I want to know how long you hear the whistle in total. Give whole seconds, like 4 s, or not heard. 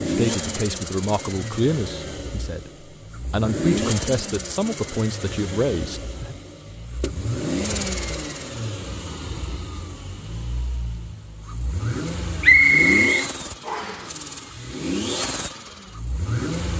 2 s.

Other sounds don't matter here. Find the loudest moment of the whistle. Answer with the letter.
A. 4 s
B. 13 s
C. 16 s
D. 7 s
B.